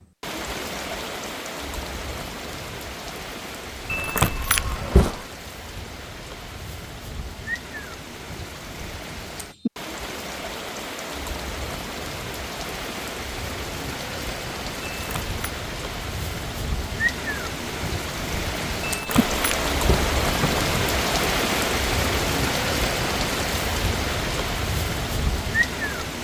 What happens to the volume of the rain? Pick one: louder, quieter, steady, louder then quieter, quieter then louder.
louder.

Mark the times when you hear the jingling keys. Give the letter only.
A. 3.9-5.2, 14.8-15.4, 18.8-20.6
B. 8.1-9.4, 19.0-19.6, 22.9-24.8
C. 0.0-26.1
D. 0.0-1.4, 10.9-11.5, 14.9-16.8
A.